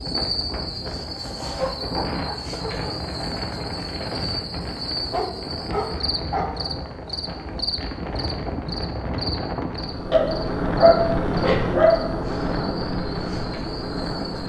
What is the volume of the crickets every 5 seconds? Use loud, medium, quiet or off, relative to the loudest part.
loud, loud, medium.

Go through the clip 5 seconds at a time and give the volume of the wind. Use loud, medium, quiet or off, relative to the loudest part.
medium, medium, loud.